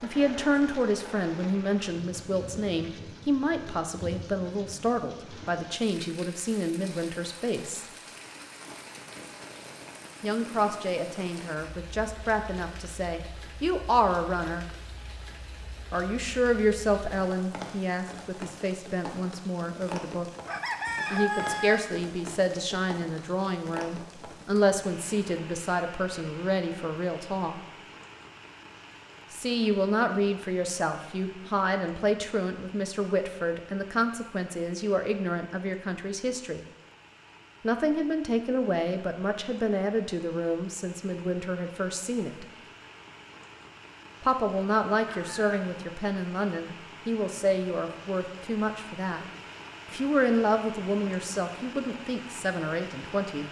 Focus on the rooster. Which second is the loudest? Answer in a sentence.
The volume of the rooster peaks at 21 seconds.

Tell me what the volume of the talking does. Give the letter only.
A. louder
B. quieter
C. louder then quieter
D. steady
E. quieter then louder
D.